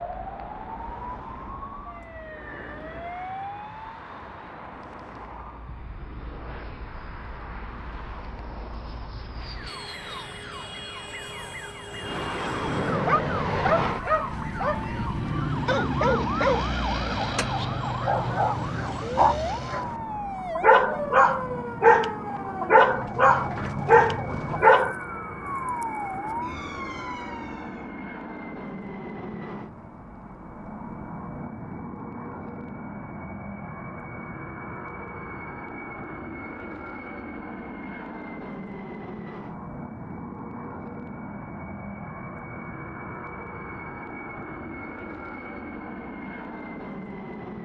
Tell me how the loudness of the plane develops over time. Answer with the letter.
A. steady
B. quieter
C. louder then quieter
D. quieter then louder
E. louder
C.